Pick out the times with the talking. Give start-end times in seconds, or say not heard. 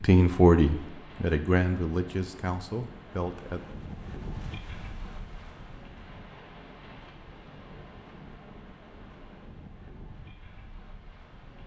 0.0-3.6.